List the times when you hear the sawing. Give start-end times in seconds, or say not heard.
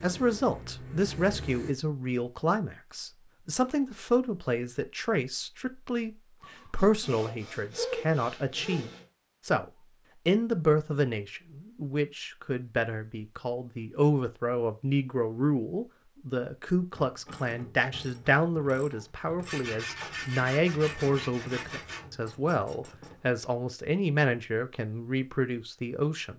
6.4-9.1, 19.4-22.1.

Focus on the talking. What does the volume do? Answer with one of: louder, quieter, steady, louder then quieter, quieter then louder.
steady.